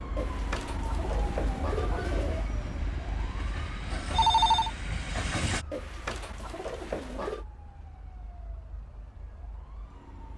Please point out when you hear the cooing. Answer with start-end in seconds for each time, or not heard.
0.1-2.5, 5.7-7.5.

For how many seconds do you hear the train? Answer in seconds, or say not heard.
4 s.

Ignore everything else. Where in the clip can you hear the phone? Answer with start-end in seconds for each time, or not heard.
4.1-4.7.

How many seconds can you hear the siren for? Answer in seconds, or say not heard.
10 s.